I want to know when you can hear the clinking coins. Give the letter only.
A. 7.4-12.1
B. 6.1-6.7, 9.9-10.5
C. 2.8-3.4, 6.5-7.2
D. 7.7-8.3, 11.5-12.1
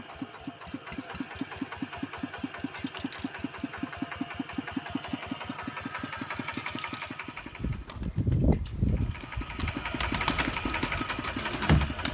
C.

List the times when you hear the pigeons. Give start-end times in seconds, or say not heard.
7.4-12.1.